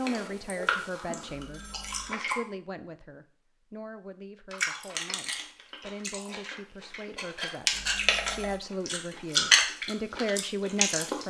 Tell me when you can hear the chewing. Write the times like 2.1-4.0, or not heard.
0.0-2.4, 4.5-11.2.